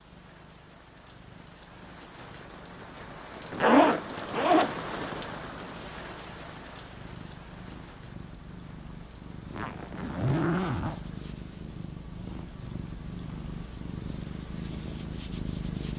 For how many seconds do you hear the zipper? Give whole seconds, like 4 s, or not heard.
3 s.